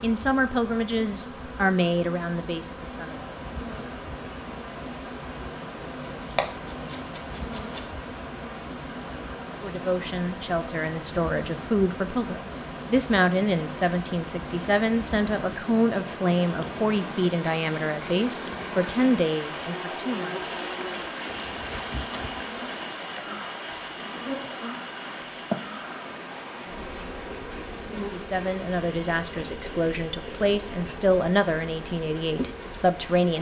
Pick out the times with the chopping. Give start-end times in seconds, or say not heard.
6.0-8.0.